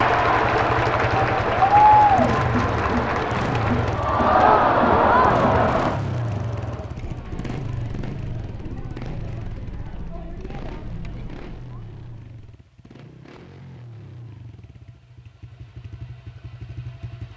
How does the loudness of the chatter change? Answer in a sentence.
The loudness of the chatter goes down.